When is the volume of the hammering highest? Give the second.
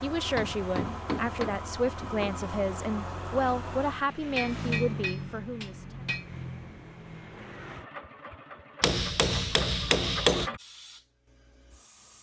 10 s.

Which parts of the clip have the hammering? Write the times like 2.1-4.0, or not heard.
0.3-2.3, 4.3-6.3, 8.8-10.5.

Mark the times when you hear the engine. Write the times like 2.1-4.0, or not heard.
0.0-10.6.